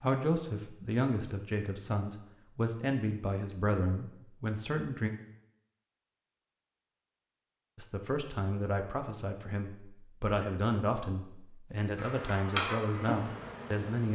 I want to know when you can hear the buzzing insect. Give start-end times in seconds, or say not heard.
11.9-14.0.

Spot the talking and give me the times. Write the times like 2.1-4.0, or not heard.
0.0-5.1, 7.8-14.0.